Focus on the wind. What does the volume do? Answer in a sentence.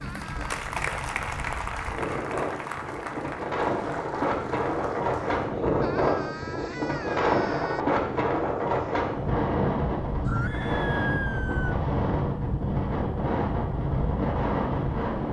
The volume of the wind goes up.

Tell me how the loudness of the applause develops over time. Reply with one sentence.
The volume of the applause goes down.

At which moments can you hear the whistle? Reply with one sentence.
You can't hear the whistle here.